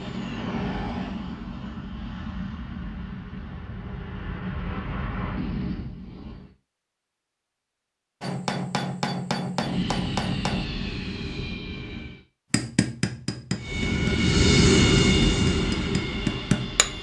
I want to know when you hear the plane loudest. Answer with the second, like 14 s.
15 s.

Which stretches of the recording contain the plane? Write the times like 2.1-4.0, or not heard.
0.0-6.5, 9.6-12.2, 13.6-16.9.